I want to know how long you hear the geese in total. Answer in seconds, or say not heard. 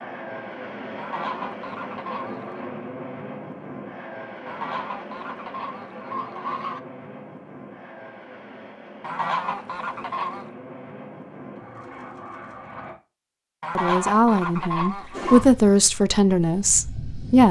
7 s.